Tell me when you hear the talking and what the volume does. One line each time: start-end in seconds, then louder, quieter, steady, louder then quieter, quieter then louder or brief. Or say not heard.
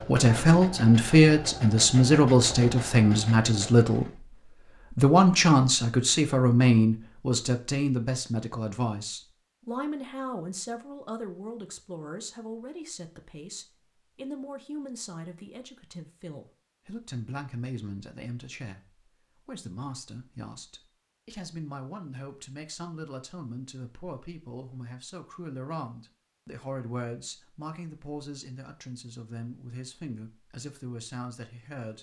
0.0-31.9 quieter.